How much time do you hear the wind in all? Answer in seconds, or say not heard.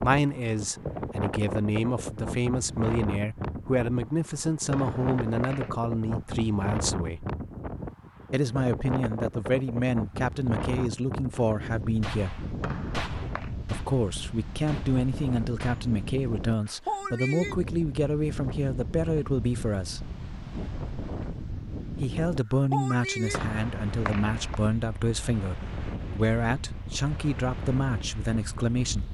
29 s.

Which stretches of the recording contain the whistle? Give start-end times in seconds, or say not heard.
4.7-5.7, 12.6-13.6, 23.3-24.6.